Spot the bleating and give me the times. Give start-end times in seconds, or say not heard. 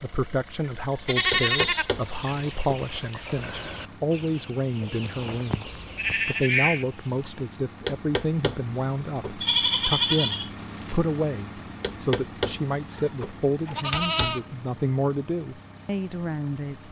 1.1-1.9, 5.3-6.8, 9.4-10.9, 12.9-14.4.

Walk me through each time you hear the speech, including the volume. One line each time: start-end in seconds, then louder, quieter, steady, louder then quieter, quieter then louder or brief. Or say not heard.
0.0-16.8 steady.